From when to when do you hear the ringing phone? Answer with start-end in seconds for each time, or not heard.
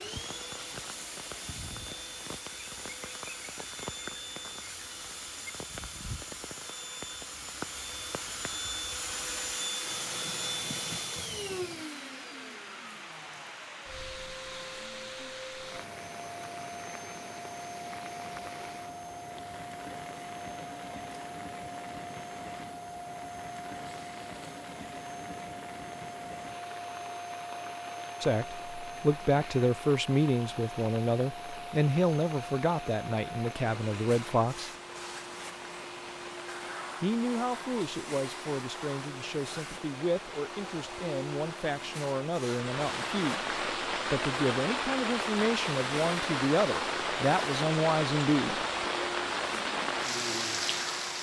not heard.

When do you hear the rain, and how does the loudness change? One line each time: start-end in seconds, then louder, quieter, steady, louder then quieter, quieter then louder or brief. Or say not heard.
0.0-51.1 louder.